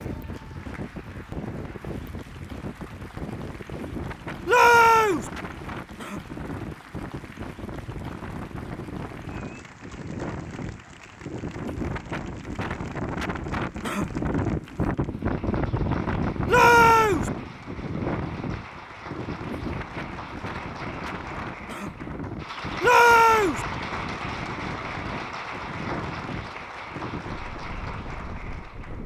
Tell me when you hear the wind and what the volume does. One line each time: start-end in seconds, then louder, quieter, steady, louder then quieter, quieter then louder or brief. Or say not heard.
0.0-29.0 louder then quieter.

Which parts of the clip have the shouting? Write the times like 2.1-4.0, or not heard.
4.5-5.3, 16.4-17.3, 22.8-23.6.